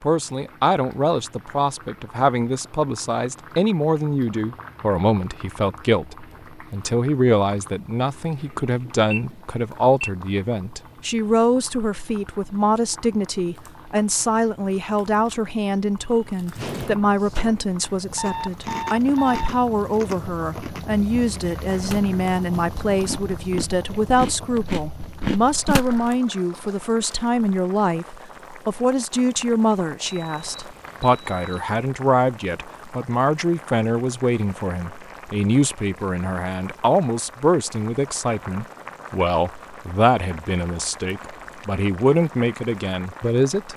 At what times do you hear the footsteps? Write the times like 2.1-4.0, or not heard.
not heard.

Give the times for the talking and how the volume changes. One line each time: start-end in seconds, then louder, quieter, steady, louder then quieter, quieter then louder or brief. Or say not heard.
0.0-43.7 steady.